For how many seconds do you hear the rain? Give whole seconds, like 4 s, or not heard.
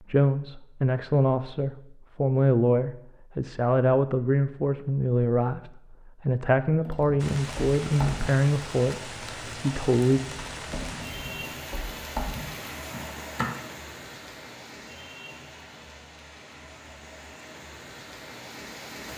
12 s.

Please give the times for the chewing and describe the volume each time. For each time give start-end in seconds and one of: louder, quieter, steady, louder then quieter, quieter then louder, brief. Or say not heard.
not heard.